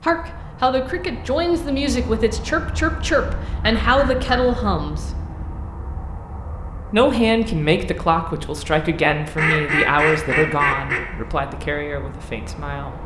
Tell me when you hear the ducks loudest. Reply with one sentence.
The loudest moment of the ducks is at 10 seconds.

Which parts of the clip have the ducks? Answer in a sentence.
The ducks can be heard from 3.8 to 4.7 s and from 9.3 to 11.0 s.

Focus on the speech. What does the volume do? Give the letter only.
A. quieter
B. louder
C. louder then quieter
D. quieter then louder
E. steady
A.